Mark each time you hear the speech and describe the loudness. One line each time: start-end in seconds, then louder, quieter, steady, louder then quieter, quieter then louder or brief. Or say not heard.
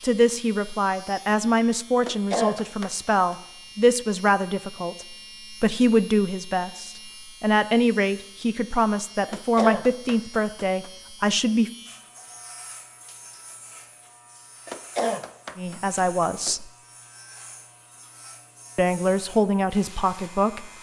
0.0-11.7 steady
15.6-16.6 brief
18.8-20.7 brief.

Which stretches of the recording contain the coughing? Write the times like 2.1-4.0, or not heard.
2.0-3.4, 9.2-10.9, 14.7-16.6.